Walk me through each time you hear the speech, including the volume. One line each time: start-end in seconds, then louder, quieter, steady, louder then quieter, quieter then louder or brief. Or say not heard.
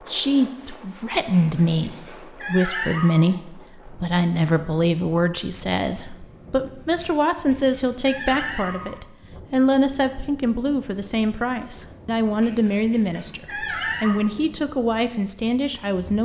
0.1-16.2 steady.